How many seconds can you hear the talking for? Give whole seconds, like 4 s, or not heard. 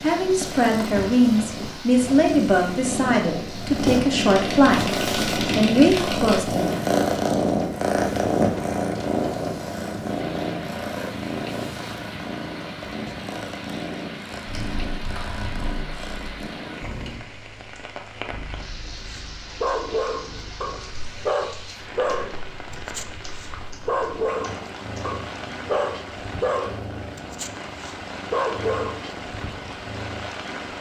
7 s.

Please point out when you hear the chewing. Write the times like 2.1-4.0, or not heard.
not heard.